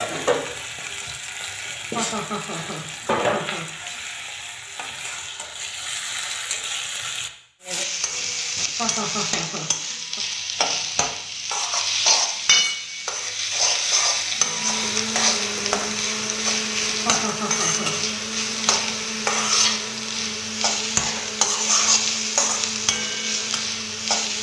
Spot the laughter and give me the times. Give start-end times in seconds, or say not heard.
1.9-4.0, 8.8-10.2, 17.1-18.0.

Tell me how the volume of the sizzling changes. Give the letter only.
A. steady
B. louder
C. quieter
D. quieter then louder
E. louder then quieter
B.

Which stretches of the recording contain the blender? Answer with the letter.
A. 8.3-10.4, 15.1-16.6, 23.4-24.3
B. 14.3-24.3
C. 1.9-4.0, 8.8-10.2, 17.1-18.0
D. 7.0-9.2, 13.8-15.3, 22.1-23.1
B.